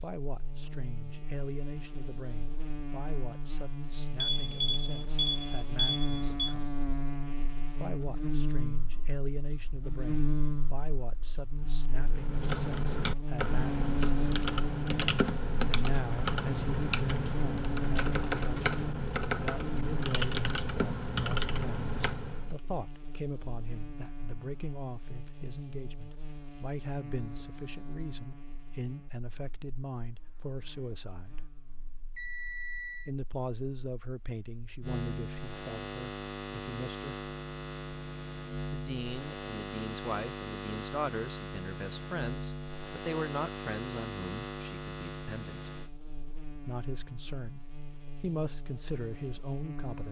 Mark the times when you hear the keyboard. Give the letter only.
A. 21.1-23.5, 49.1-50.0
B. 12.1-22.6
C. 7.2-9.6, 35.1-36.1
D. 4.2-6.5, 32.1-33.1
B.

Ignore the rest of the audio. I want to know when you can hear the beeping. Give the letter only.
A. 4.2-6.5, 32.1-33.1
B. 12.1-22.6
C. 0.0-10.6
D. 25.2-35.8
A.